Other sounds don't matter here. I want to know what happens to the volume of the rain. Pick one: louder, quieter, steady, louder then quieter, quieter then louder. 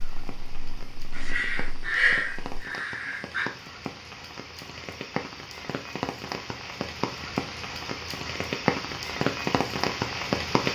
louder.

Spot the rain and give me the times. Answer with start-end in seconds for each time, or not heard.
0.0-10.6.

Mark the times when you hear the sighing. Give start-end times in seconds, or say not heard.
1.1-3.5.